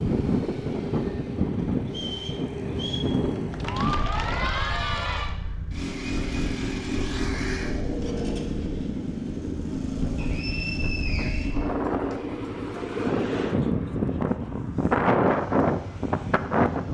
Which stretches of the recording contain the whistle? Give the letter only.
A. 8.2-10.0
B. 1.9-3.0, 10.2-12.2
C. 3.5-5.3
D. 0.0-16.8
B.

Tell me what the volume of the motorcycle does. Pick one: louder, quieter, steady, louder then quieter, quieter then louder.
louder then quieter.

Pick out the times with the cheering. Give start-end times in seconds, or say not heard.
3.5-5.3.